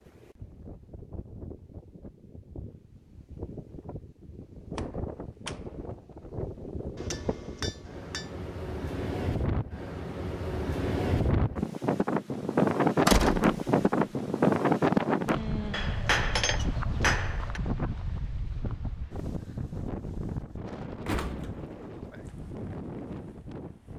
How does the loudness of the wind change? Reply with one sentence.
The volume of the wind goes up, then down.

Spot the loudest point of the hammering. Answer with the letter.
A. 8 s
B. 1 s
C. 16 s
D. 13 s
C.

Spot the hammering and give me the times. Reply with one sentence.
The hammering can be heard from 7.0 to 8.3 s and from 15.7 to 17.6 s.